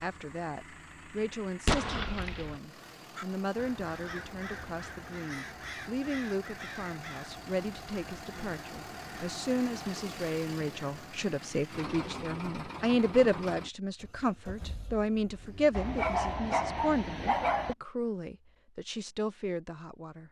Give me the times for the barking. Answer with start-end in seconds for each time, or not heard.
15.7-17.8.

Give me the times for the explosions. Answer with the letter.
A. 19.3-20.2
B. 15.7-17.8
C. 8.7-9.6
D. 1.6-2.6
D.